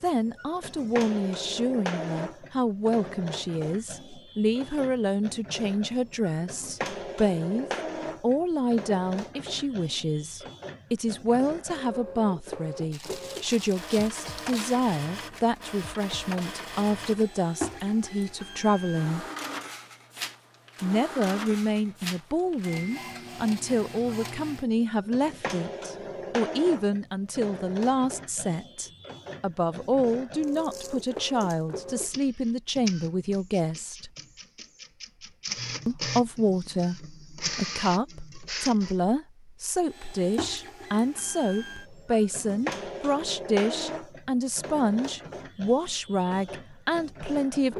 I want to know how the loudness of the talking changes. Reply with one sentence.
The loudness of the talking stays about the same.